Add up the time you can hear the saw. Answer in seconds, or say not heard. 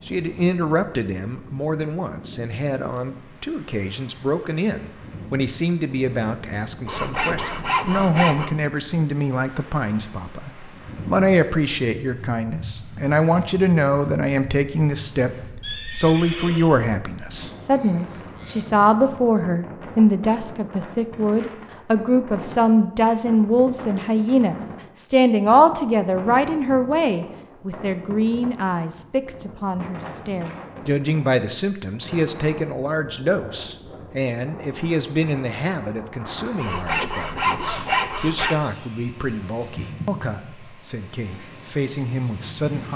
4 s.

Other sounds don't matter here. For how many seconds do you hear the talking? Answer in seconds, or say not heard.
42 s.